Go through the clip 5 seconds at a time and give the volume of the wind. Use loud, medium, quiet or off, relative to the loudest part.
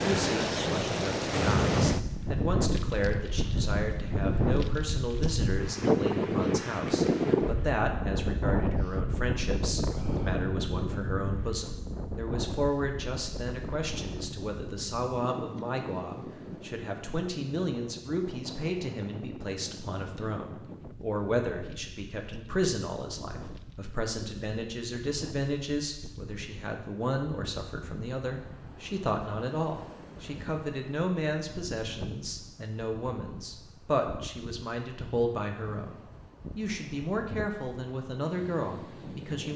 loud, loud, medium, quiet, quiet, quiet, quiet, quiet.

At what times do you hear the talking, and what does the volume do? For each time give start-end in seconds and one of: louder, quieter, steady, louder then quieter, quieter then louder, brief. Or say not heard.
0.0-39.5 steady.